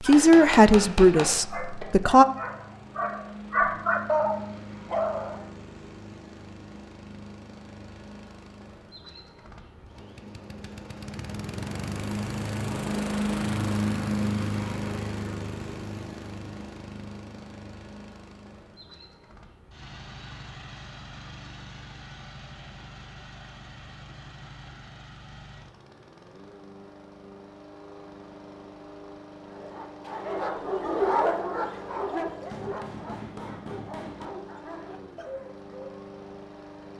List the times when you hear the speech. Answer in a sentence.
The speech can be heard from 0.0 to 2.2 s.